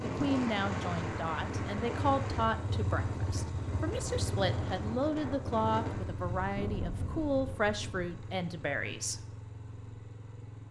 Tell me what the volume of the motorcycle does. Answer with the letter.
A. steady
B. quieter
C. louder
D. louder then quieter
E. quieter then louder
B.